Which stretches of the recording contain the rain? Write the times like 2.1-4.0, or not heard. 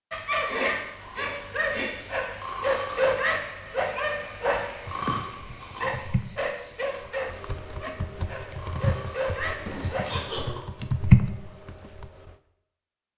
not heard.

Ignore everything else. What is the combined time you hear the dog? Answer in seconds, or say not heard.
10 s.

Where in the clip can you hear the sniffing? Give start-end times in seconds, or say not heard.
0.5-1.9, 4.5-6.8, 9.7-10.6.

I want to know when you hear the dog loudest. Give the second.
3 s.